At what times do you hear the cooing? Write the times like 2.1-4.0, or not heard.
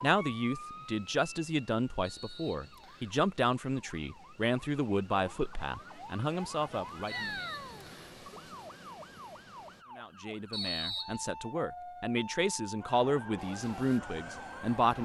not heard.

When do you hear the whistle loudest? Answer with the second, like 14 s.
11 s.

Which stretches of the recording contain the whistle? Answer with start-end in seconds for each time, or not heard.
2.0-3.1, 7.1-8.2, 10.5-11.2.